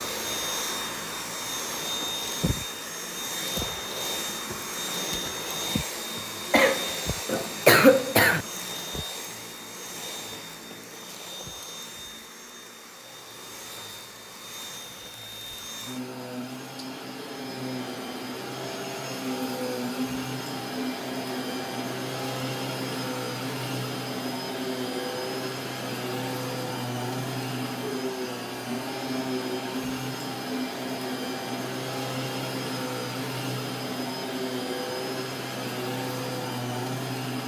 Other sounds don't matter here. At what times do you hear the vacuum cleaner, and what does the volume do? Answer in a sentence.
The vacuum cleaner can be heard from 0.0 to 37.4 s, getting quieter then louder.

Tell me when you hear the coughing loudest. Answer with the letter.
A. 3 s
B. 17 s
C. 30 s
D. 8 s
D.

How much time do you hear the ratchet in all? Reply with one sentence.
The ratchet can't be heard in this clip.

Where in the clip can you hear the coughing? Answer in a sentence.
The coughing can be heard from 6.5 to 8.4 s.